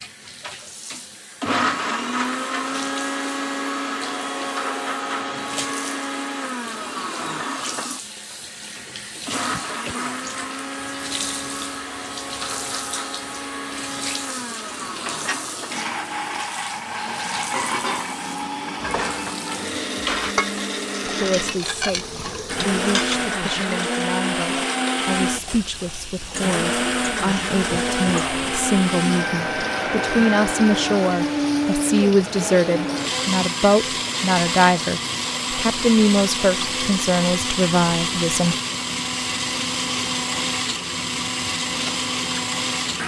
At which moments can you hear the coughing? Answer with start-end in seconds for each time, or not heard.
9.5-10.3, 27.9-28.5.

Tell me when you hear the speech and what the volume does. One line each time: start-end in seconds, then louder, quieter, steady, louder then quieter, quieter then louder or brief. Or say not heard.
21.1-38.5 louder.